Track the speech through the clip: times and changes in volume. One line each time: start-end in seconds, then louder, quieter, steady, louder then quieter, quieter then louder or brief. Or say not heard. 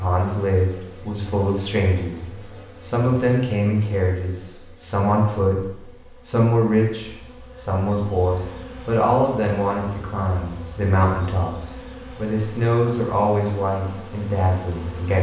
0.0-15.1 steady.